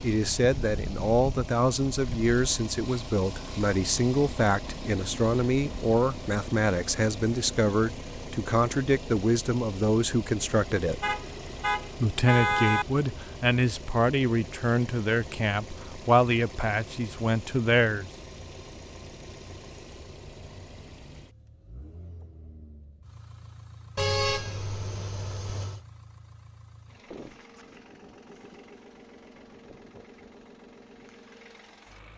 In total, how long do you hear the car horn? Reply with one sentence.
You can hear the car horn for 4 seconds altogether.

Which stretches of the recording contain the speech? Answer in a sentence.
You can hear the speech from 0.0 to 11.2 s and from 12.0 to 18.1 s.